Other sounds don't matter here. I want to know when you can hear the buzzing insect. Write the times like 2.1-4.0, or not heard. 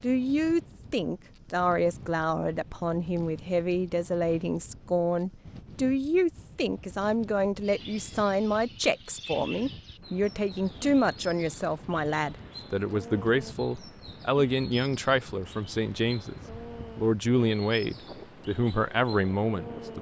not heard.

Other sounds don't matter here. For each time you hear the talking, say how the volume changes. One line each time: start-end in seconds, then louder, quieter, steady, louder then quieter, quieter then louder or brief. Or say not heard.
0.0-19.9 steady.